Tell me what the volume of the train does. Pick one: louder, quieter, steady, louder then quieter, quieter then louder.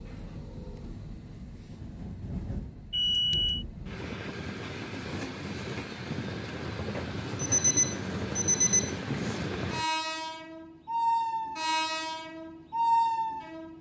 louder.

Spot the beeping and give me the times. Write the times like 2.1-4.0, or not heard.
2.9-3.6, 7.3-9.0.